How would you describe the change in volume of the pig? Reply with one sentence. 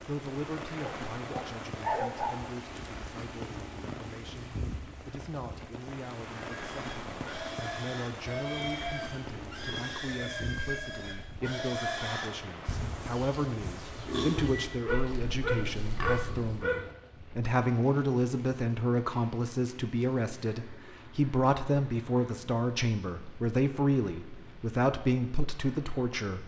The volume of the pig stays about the same.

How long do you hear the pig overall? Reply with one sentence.
The pig can be heard for 10 seconds in total.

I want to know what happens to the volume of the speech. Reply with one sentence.
The volume of the speech goes up.